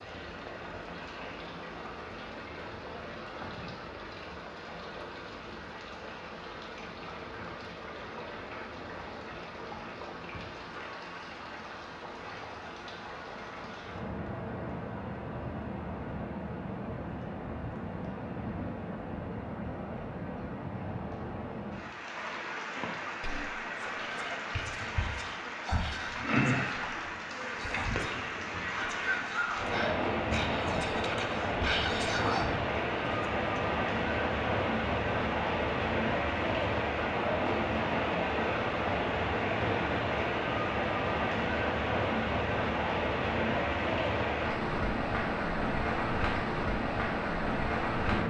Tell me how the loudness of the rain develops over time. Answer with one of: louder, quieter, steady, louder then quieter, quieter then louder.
louder.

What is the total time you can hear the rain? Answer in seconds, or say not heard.
48 s.